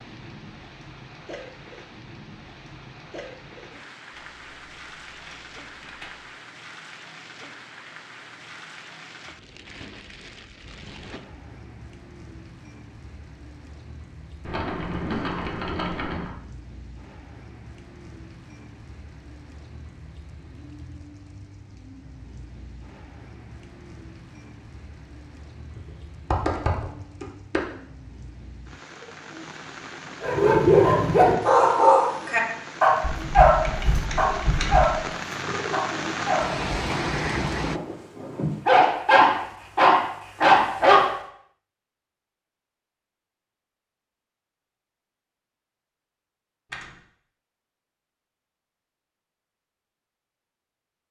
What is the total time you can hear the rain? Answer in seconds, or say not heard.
38 s.